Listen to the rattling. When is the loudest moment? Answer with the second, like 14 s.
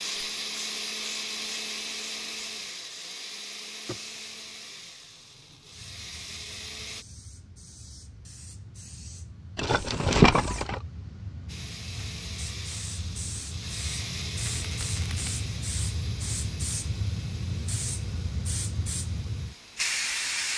10 s.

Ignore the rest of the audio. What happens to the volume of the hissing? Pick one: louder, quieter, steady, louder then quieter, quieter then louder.
louder.